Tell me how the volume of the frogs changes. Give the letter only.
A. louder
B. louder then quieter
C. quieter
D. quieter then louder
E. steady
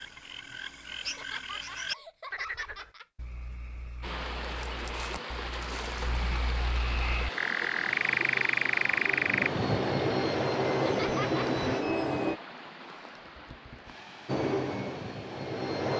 D.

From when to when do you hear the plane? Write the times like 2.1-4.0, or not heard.
7.8-12.4, 14.2-15.9.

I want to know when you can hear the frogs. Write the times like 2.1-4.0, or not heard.
0.0-9.5.